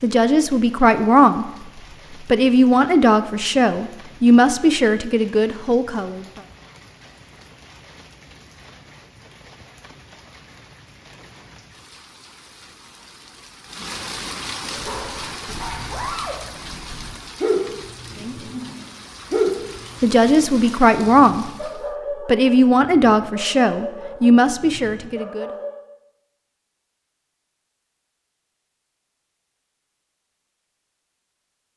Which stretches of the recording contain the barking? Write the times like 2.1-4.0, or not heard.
14.7-25.8.